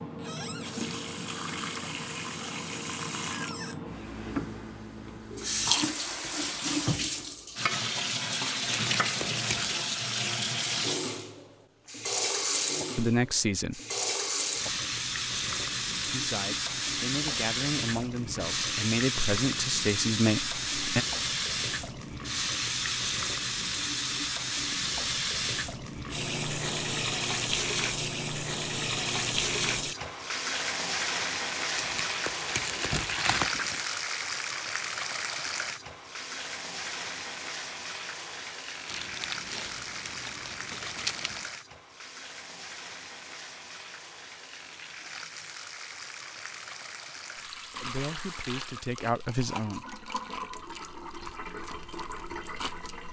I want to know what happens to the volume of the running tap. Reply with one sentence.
The loudness of the running tap goes down.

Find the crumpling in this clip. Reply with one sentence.
You can hear the crumpling from 8.7 to 9.8 s, from 31.7 to 33.9 s and from 38.9 to 41.5 s.